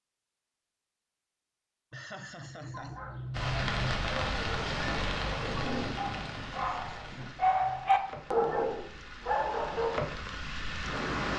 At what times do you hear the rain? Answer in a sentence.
You can hear the rain from 3.3 to 11.3 s.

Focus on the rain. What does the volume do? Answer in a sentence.
The loudness of the rain goes down, then up.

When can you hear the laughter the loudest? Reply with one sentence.
The volume of the laughter peaks at 4 seconds.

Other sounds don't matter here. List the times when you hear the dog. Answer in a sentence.
You can hear the dog from 2.7 to 10.2 s.